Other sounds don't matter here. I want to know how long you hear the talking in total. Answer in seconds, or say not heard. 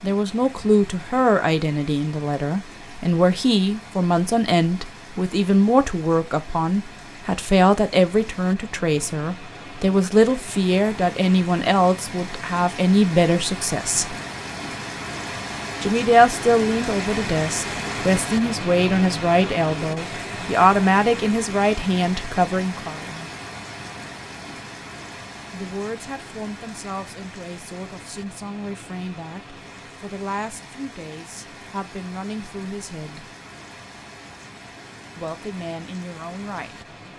31 s.